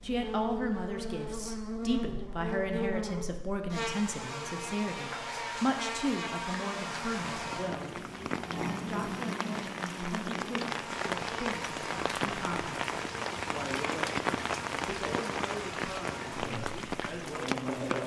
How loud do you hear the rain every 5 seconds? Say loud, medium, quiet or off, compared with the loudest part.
off, medium, loud, loud.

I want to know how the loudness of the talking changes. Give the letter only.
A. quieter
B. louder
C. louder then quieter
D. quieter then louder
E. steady
A.